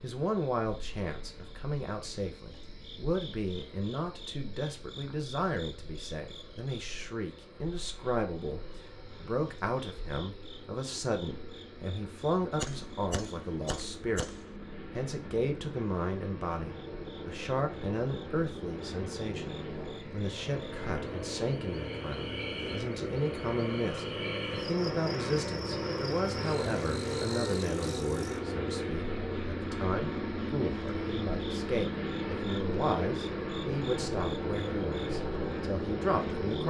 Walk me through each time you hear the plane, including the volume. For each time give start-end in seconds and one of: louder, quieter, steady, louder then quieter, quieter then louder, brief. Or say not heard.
0.0-36.6 louder.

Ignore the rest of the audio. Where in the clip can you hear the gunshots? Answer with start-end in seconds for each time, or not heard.
12.6-14.6.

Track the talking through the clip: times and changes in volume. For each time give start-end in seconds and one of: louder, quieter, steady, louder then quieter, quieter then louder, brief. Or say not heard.
0.0-14.3 steady
14.9-36.6 steady.